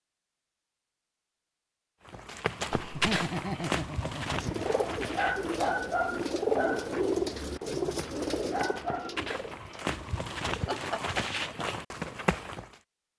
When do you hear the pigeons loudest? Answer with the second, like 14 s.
7 s.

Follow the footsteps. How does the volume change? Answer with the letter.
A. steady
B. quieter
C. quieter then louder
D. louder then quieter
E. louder
C.